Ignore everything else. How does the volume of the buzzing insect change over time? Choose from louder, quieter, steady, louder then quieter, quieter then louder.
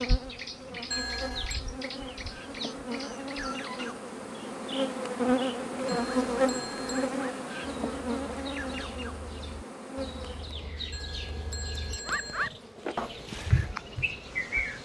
louder then quieter.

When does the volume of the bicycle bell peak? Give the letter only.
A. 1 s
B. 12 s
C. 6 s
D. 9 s
A.